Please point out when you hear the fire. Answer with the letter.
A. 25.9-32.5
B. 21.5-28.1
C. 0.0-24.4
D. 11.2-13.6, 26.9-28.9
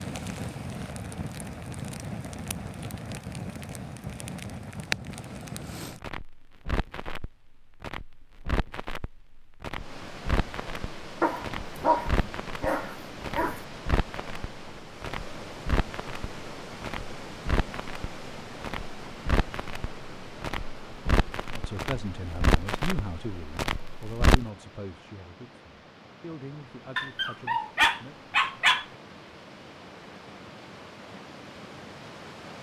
C.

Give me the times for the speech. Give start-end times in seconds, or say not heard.
21.5-28.1.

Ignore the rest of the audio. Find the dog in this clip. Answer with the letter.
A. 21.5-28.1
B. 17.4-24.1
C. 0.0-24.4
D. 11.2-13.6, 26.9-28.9
D.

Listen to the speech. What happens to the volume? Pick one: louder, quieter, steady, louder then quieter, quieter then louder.
quieter.